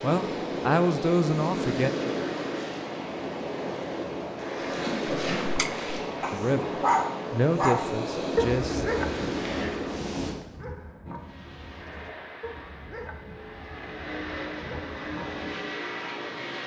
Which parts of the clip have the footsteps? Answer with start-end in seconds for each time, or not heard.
not heard.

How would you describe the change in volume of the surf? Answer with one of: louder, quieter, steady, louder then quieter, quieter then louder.
steady.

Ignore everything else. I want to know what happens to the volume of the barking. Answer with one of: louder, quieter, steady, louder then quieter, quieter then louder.
quieter.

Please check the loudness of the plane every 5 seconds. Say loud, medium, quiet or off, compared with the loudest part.
off, off, medium, loud.